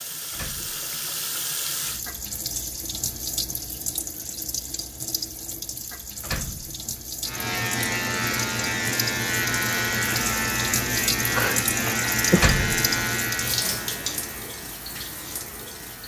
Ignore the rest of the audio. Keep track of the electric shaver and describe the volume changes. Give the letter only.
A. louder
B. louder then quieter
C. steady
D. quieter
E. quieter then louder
D.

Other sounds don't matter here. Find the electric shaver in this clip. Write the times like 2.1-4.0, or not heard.
7.2-16.0.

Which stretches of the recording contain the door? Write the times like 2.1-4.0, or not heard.
0.3-0.9, 6.2-6.9, 12.3-13.1.